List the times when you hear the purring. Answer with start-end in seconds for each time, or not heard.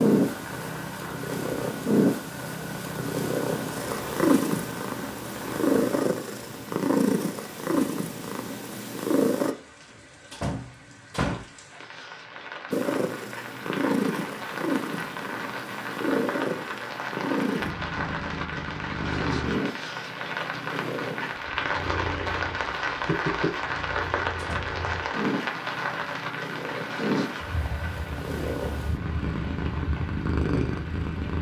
0.0-9.6, 12.7-31.3.